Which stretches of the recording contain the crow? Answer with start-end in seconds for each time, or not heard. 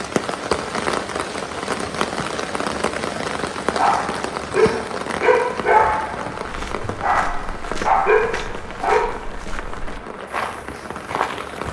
not heard.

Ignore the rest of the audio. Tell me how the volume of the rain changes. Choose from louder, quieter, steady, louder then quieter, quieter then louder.
quieter.